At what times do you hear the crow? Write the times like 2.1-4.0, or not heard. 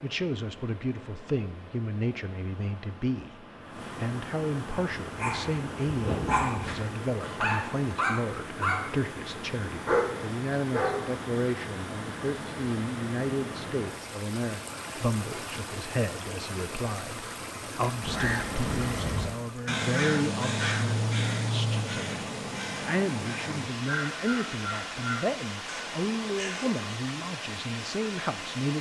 18.0-26.9.